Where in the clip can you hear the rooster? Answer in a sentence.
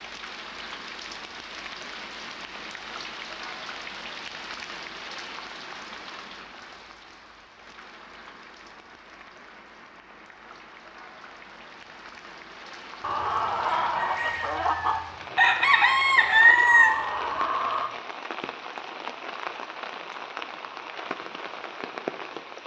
The rooster can be heard from 13.0 to 17.9 s.